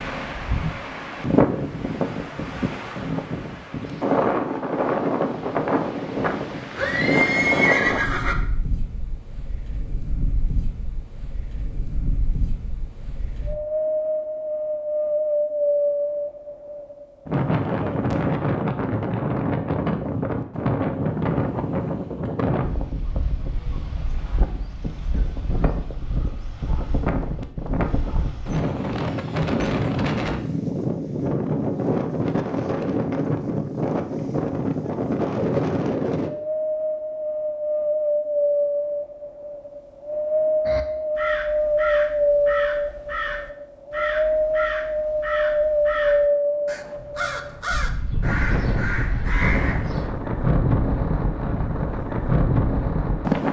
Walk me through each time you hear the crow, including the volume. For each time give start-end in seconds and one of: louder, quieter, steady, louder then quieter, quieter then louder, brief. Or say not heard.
40.6-50.1 steady.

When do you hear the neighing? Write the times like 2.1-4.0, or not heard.
6.8-8.3.